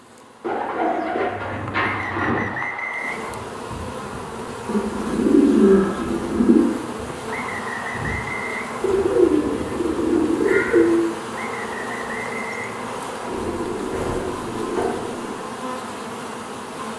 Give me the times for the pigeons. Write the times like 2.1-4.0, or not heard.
0.4-2.5, 4.7-6.6, 8.8-11.1, 13.2-15.4.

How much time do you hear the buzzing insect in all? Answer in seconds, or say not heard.
17 s.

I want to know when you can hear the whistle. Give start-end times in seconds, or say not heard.
1.8-3.5, 7.2-9.3, 11.3-13.1.